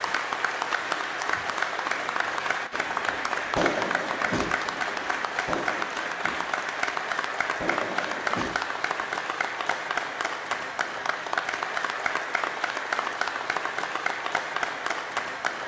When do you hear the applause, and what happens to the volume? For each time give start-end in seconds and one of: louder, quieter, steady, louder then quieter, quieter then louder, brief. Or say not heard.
0.0-15.6 steady.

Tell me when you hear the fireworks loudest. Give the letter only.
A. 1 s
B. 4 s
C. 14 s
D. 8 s
B.